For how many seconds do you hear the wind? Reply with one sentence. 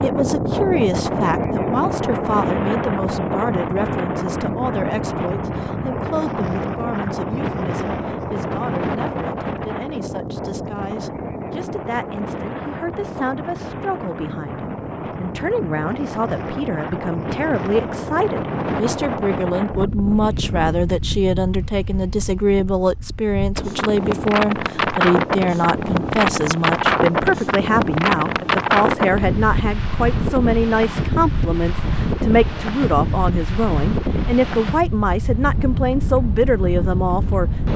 The wind can be heard for 38 seconds in total.